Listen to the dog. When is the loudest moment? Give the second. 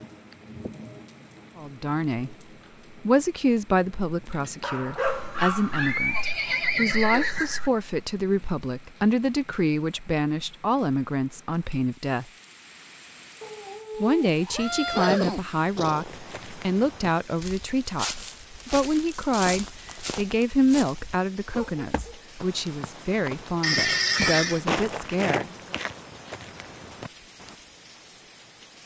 5 s.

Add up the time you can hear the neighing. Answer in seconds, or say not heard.
5 s.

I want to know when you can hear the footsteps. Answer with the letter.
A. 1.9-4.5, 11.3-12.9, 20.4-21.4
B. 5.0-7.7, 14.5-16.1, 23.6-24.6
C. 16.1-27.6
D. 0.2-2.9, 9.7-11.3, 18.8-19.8
C.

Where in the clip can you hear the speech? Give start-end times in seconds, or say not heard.
1.6-2.4, 3.0-12.2, 14.0-25.6.